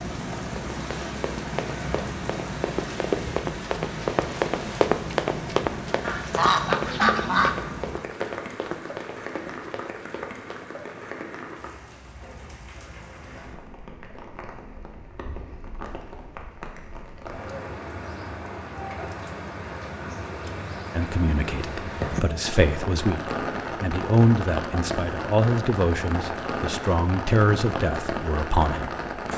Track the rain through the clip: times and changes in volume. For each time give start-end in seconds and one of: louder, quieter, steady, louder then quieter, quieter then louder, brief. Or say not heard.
0.0-29.3 quieter then louder.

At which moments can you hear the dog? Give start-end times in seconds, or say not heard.
not heard.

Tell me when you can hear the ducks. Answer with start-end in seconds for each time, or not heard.
6.0-7.6.